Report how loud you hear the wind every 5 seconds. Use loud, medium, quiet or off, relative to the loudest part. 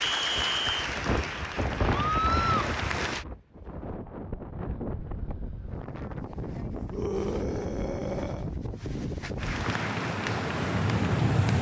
medium, medium, loud.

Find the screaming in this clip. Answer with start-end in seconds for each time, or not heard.
1.9-2.7, 6.9-8.5.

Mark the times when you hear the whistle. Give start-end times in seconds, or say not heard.
0.0-0.8.